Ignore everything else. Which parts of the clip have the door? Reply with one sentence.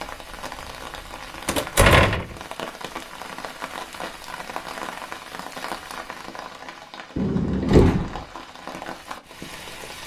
The door can be heard from 1.4 to 2.4 s and from 7.2 to 8.2 s.